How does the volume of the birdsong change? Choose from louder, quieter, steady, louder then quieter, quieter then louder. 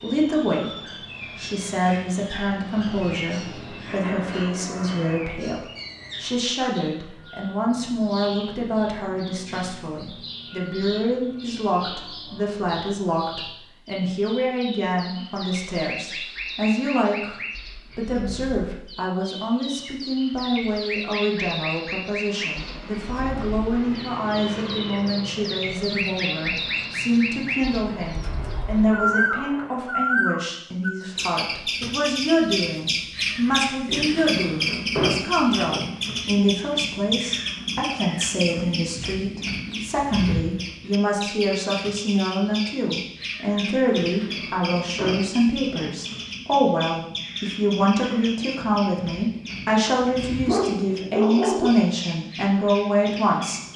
louder then quieter.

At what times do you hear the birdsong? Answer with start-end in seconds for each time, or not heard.
0.0-53.7.